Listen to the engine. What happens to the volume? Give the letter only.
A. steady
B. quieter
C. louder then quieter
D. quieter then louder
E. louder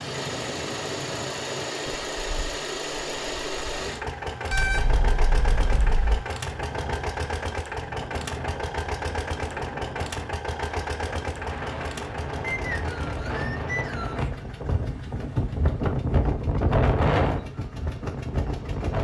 B.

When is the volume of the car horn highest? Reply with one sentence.
The volume of the car horn peaks at 5 seconds.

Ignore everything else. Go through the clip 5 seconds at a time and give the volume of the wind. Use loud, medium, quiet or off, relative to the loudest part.
quiet, quiet, medium, loud.